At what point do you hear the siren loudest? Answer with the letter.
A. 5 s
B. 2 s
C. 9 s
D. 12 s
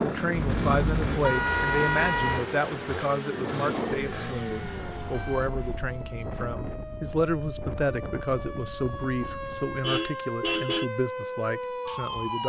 D.